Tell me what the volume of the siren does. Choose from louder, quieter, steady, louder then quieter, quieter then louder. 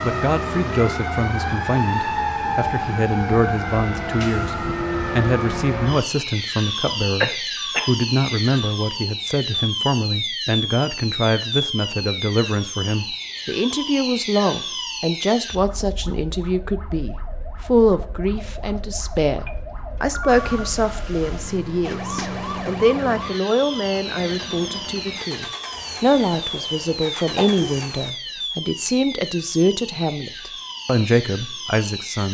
quieter.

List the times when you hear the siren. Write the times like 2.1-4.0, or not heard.
0.0-32.3.